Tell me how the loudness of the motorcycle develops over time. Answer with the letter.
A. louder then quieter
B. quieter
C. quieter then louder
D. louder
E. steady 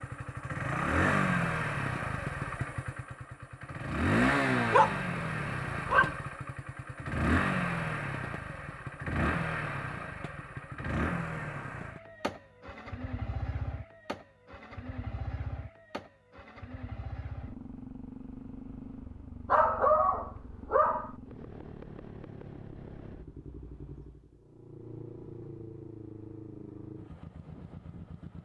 B.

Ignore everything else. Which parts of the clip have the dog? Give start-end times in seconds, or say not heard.
4.5-6.2, 19.4-21.1.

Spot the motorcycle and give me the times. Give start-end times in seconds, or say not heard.
0.0-28.4.